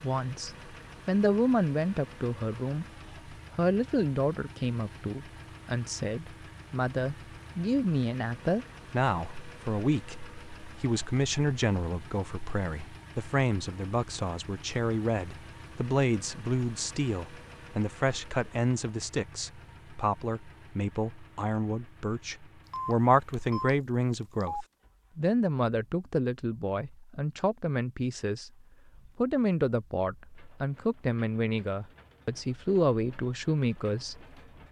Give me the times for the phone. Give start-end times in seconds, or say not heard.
22.7-24.6.